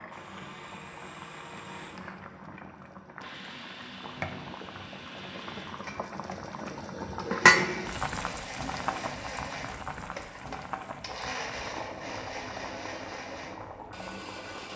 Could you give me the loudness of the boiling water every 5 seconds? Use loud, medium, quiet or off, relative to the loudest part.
quiet, loud, quiet.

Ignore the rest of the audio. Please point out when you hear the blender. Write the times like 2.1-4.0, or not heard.
0.0-14.7.